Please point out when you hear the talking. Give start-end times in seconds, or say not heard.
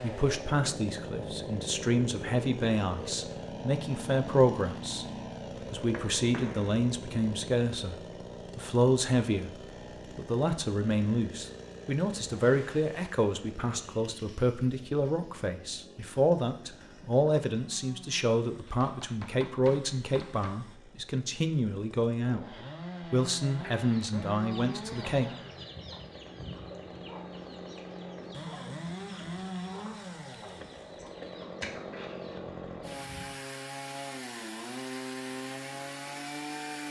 0.0-5.0, 5.7-9.6, 10.2-25.3.